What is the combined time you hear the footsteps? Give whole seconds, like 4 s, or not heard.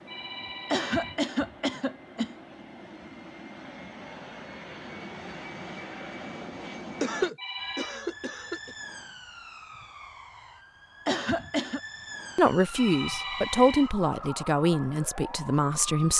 not heard.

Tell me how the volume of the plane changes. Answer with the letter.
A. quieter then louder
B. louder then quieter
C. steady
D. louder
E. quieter
D.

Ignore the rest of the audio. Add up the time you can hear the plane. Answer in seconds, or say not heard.
7 s.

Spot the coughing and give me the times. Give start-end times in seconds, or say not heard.
0.7-2.4, 7.0-8.8, 11.1-11.8.